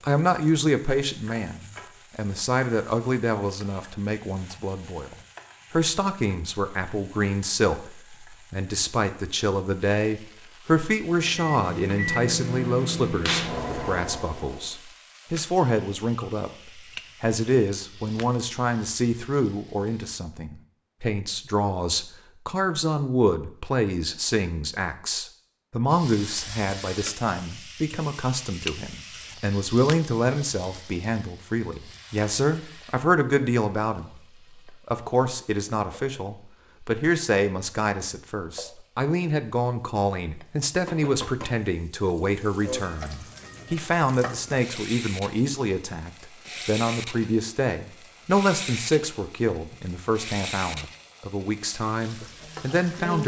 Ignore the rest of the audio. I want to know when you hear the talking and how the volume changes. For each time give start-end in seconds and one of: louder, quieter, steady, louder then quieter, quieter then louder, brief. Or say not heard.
0.0-53.2 steady.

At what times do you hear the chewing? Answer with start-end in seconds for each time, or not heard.
not heard.